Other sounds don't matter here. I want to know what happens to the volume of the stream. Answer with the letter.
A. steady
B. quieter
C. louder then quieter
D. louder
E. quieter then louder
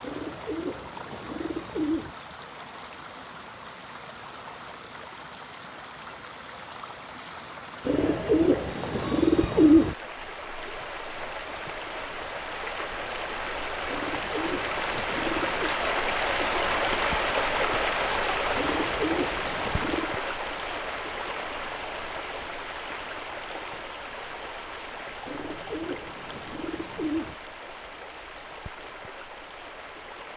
C.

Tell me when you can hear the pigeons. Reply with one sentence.
The pigeons can be heard from 0.0 to 2.1 s, from 7.8 to 9.9 s, from 13.8 to 15.7 s, from 18.6 to 20.1 s and from 25.2 to 27.4 s.